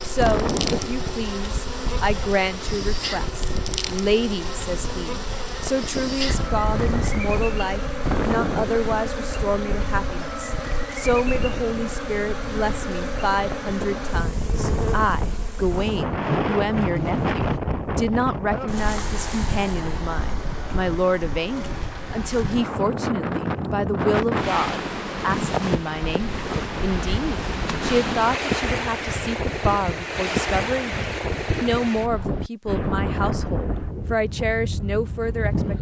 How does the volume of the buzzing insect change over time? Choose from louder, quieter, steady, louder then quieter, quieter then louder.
steady.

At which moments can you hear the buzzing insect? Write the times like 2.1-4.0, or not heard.
0.0-17.6.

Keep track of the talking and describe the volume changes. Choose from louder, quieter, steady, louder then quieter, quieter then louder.
steady.